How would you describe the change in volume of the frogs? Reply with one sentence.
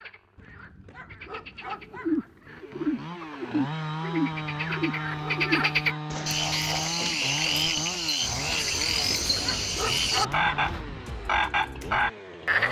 The loudness of the frogs goes up.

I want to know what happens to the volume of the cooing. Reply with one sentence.
The volume of the cooing goes down.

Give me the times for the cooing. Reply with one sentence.
The cooing can be heard from 1.9 to 10.8 s.